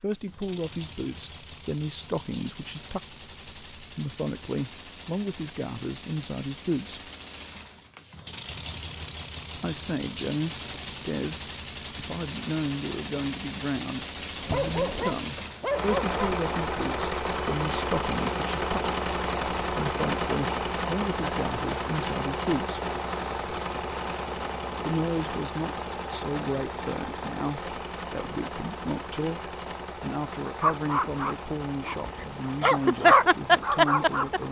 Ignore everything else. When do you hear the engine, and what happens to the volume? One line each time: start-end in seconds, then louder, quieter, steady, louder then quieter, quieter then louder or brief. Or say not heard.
0.0-34.4 louder then quieter.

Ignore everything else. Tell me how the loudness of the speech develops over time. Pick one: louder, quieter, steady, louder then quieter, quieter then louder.
steady.